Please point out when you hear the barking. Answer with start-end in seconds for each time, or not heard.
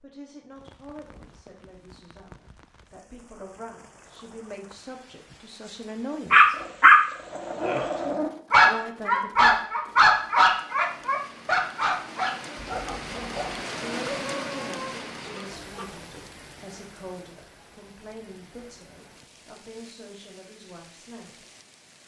6.3-15.8.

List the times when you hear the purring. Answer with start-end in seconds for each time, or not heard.
not heard.